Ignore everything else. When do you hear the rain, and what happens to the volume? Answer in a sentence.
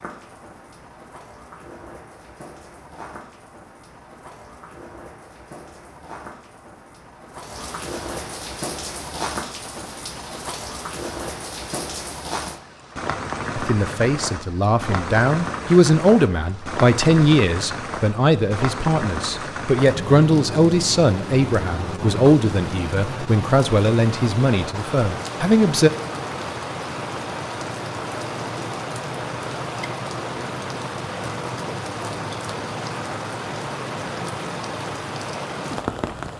You can hear the rain from 0.0 to 36.3 s, getting louder.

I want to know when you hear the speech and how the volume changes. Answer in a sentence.
You can hear the speech from 13.6 to 25.9 s, at a steady volume.